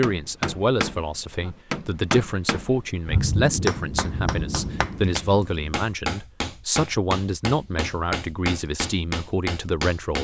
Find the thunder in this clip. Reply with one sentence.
You can hear the thunder from 3.0 to 5.7 s.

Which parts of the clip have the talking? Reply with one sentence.
The talking can be heard from 0.0 to 10.1 s.